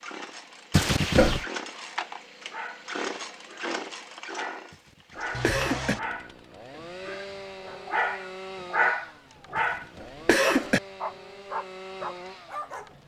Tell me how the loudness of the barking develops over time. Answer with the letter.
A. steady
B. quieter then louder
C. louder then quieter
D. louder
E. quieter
C.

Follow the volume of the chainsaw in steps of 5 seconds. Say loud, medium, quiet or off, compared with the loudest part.
loud, loud, medium.